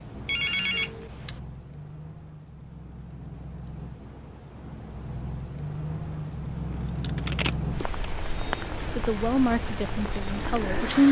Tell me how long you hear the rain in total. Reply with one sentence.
The rain can be heard for 11 seconds in total.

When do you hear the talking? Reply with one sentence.
The talking can be heard from 8.9 to 11.0 s.